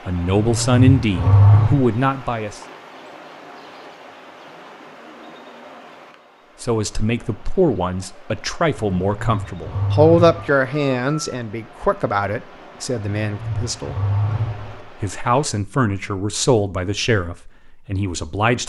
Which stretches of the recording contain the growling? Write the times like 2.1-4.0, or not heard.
0.3-1.9, 9.0-10.5, 13.2-14.8.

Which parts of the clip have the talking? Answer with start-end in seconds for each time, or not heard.
0.1-2.6, 6.6-13.9, 14.8-18.6.